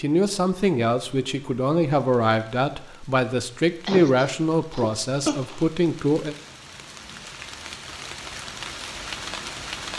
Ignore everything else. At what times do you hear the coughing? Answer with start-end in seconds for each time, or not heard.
3.9-5.7.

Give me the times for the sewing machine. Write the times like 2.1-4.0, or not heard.
not heard.